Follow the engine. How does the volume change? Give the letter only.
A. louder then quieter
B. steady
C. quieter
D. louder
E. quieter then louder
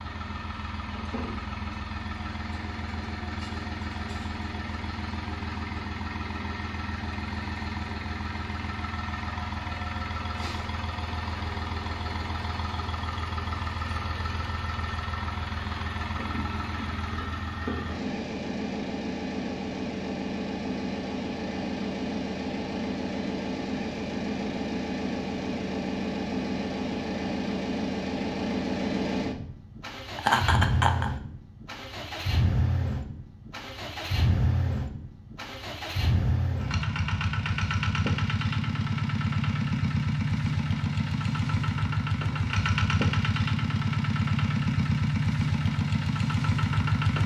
D.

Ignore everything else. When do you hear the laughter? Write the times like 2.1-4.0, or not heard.
30.1-31.1.